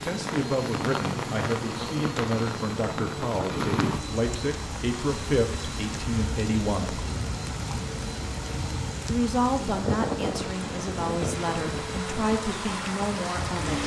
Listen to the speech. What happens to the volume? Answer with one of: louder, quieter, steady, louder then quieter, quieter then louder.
steady.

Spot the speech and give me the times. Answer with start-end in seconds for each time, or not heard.
0.0-7.0, 9.1-13.8.